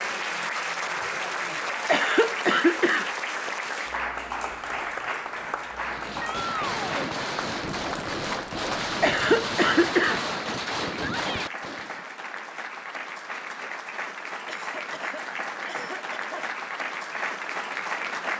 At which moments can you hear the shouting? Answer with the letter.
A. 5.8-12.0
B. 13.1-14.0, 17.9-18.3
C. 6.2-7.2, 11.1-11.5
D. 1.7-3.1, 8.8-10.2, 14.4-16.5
C.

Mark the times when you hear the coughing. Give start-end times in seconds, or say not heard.
1.7-3.1, 8.8-10.2, 14.4-16.5.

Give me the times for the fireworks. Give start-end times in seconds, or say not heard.
5.8-12.0.